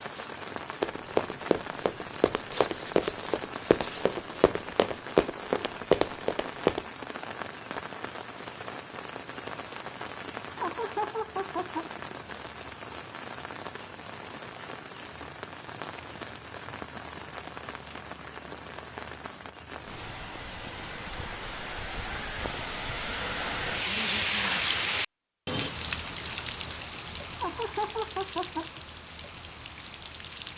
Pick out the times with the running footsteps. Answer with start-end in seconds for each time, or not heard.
0.8-6.8.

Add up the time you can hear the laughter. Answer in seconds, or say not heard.
3 s.